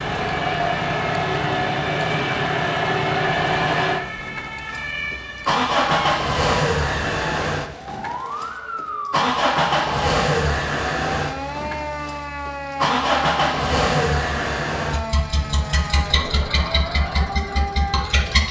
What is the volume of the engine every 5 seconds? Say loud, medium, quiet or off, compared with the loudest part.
loud, loud, loud, medium.